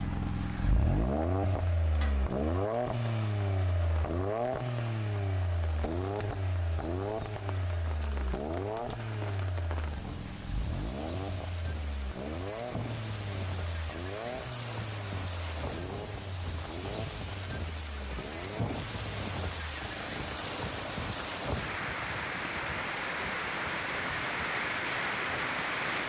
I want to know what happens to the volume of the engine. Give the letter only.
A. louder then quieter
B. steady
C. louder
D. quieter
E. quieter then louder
D.